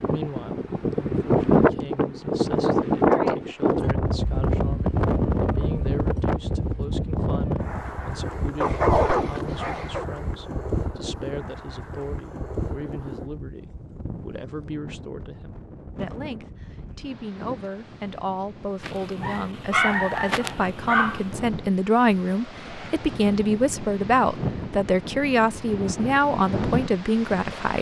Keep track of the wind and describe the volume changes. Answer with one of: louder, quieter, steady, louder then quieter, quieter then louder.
quieter then louder.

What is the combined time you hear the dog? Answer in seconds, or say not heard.
4 s.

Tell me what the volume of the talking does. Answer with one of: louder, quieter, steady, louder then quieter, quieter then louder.
louder.